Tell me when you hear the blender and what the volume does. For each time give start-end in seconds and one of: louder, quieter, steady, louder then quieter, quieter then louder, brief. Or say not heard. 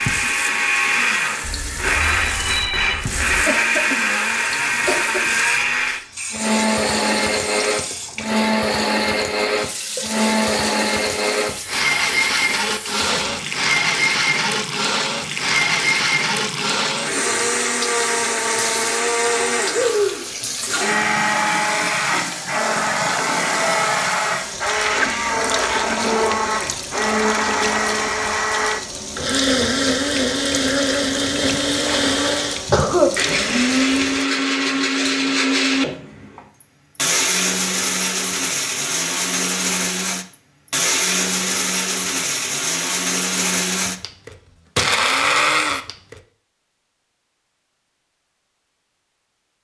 0.0-46.2 steady.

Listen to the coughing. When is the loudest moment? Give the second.
33 s.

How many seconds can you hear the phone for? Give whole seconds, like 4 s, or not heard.
2 s.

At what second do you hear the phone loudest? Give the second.
3 s.